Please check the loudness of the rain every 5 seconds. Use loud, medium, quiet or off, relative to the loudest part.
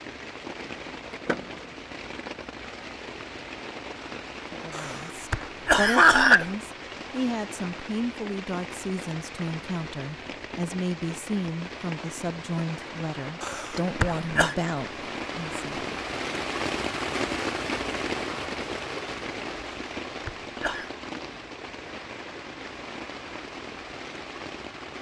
medium, medium, medium, loud, medium.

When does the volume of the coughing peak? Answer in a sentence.
The loudest moment of the coughing is at 6 seconds.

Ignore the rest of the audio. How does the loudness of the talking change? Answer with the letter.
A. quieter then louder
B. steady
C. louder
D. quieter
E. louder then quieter
B.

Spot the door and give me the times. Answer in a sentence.
You can hear the door from 1.1 to 1.8 s.